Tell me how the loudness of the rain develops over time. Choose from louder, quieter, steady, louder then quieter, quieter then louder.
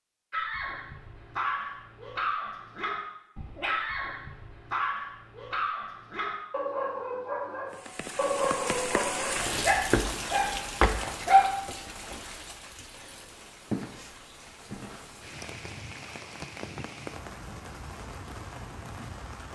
quieter.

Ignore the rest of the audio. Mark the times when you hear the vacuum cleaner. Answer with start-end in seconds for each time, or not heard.
not heard.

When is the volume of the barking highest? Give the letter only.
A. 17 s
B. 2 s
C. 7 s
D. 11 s
D.